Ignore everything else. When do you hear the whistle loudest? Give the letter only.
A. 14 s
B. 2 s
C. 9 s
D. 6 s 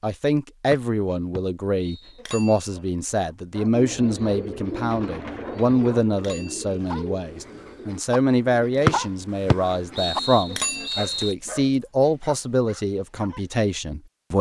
C.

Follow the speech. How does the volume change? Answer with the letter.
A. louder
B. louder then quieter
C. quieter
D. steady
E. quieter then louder
D.